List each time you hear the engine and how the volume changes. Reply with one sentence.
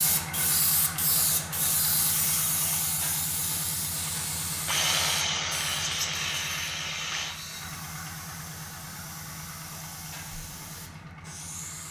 The engine can be heard from 0.0 to 11.8 s, getting quieter.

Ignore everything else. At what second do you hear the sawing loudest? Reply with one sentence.
The loudest moment of the sawing is at 5 seconds.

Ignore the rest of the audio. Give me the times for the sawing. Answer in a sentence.
You can hear the sawing from 4.7 to 7.3 s.